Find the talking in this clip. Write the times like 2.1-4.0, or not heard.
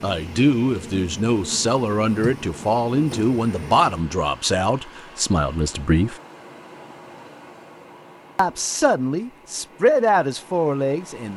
0.0-6.2, 8.3-11.3.